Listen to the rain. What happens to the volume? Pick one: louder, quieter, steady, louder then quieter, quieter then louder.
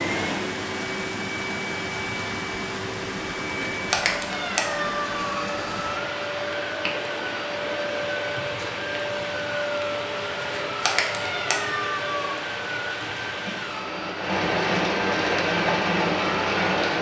louder.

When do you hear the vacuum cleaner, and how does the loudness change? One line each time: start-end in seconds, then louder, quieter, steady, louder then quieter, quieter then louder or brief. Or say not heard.
0.0-16.9 steady.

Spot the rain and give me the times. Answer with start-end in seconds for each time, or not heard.
0.1-16.9.